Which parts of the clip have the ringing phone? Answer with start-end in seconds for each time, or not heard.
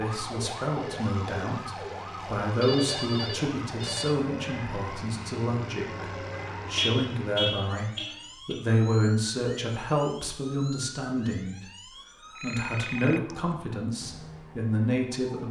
2.6-4.2, 12.3-13.6.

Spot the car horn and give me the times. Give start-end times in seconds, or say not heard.
6.0-8.6.